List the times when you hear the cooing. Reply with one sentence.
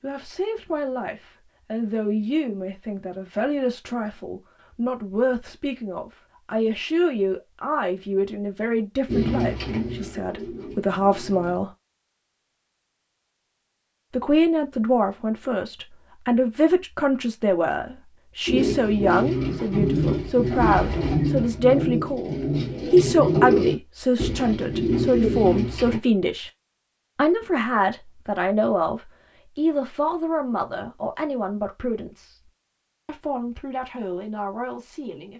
You can hear the cooing from 9.1 to 11.6 s and from 18.4 to 26.0 s.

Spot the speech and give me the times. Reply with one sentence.
The speech can be heard from 0.0 to 11.7 s, from 14.1 to 26.5 s, from 27.1 to 32.4 s and from 33.0 to 35.3 s.